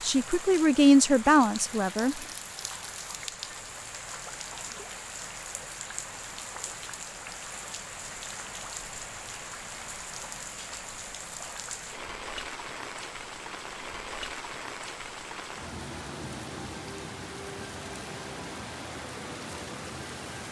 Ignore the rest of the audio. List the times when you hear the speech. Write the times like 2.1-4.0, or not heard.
0.0-2.2.